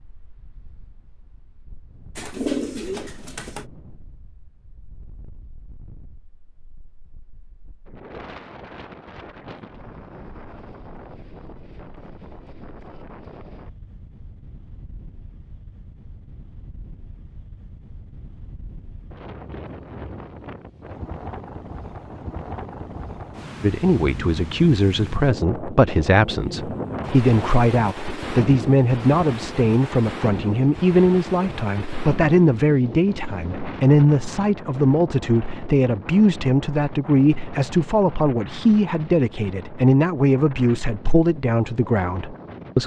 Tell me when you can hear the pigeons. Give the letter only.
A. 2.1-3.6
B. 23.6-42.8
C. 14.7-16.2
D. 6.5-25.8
A.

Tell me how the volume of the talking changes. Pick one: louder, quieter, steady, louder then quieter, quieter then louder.
steady.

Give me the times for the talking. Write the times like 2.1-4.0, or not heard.
23.6-42.8.